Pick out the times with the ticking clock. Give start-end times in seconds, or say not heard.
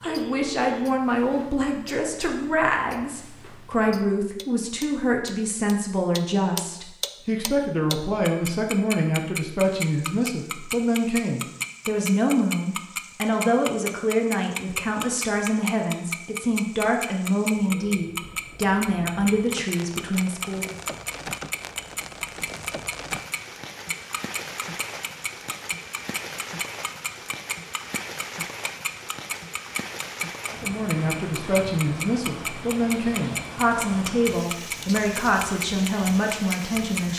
0.0-37.0.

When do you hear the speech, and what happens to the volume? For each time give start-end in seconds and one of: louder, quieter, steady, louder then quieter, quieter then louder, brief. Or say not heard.
0.0-20.8 steady
30.5-37.1 steady.